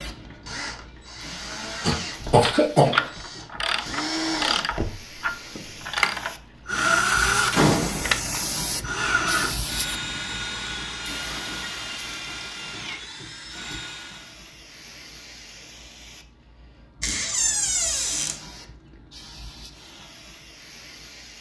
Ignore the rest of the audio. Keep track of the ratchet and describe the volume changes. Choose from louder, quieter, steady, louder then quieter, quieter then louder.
quieter.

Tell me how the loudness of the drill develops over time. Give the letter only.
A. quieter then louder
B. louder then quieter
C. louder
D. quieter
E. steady
B.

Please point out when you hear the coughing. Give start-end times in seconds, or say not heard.
1.8-3.0.